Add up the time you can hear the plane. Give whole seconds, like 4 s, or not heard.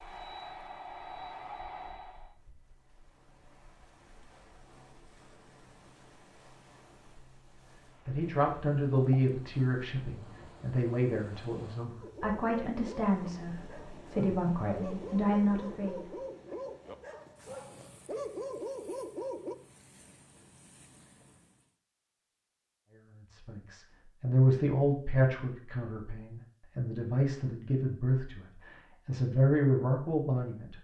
2 s.